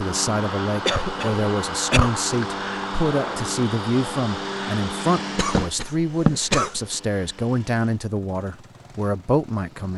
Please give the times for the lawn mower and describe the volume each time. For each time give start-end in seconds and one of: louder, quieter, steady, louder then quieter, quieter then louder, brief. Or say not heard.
0.0-9.9 quieter.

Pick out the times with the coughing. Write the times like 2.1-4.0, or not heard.
0.8-2.2, 5.3-6.8.